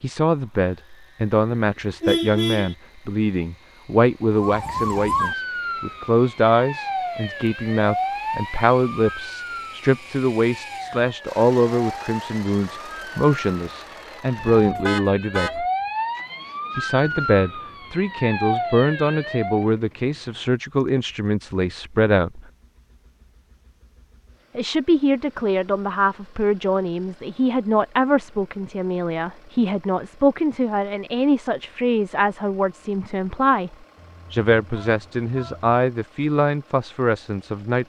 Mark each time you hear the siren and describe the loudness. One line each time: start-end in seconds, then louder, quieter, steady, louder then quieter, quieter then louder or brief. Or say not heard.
4.3-19.7 quieter then louder.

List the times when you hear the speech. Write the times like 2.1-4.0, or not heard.
0.0-15.7, 16.8-22.4, 24.6-37.8.